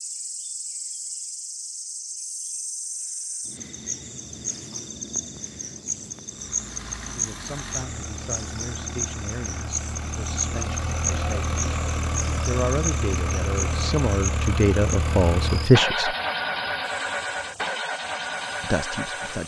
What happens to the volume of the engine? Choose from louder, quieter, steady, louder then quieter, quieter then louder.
louder.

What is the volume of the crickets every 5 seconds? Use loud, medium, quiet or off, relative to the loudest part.
loud, loud, loud, quiet.